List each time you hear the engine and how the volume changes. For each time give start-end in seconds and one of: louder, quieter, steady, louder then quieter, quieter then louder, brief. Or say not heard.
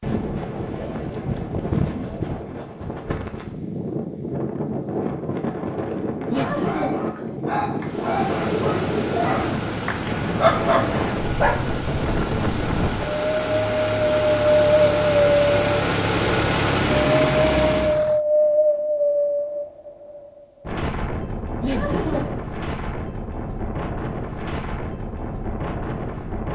7.8-18.2 louder.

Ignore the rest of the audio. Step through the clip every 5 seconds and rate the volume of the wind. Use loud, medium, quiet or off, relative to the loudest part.
medium, medium, medium, loud, medium, medium.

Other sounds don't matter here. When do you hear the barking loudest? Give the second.
11 s.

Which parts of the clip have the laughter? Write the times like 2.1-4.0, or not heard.
6.3-7.0, 21.6-22.4.